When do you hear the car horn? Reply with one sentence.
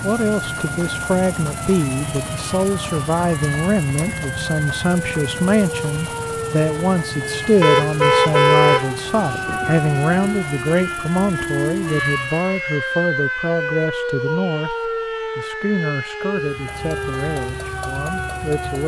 The car horn can be heard from 7.6 to 9.6 s.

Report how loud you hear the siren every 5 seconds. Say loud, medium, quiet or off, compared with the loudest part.
medium, loud, loud, loud.